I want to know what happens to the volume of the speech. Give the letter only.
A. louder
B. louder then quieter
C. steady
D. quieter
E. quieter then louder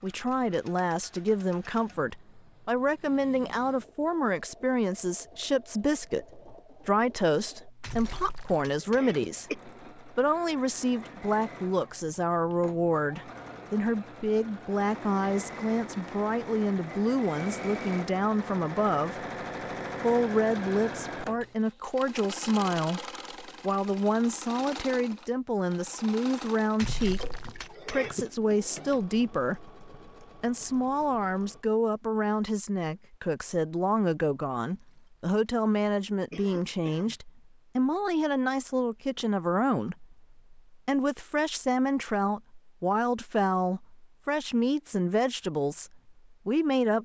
C.